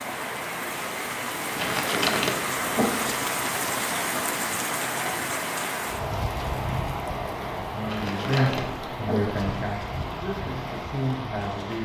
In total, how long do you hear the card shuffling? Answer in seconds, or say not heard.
3 s.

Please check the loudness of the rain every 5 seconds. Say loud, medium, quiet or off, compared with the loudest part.
loud, loud, medium.